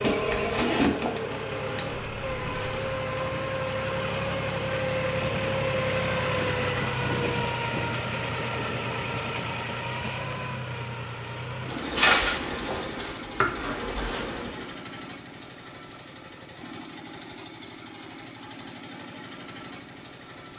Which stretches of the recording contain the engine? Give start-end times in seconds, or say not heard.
0.0-20.5.